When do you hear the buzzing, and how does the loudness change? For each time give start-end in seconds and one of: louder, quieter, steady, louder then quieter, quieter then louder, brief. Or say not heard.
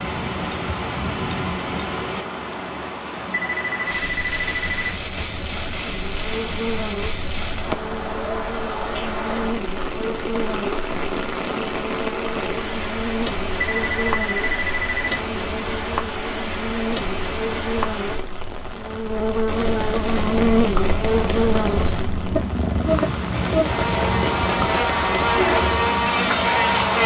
5.8-27.0 louder.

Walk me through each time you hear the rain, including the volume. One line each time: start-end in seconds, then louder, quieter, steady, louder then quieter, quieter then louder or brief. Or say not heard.
0.0-27.0 steady.